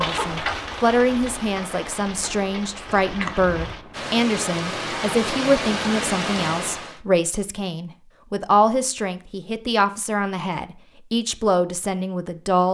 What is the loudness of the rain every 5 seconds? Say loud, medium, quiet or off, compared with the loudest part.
loud, loud, off.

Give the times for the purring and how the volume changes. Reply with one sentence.
You can't hear the purring here.